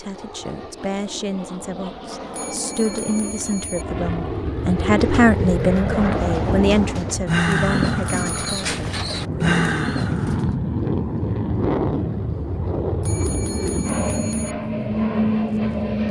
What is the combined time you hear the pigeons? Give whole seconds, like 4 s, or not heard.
6 s.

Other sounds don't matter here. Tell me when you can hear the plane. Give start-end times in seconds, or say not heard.
0.0-16.0.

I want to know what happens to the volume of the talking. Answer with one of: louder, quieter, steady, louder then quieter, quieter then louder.
louder then quieter.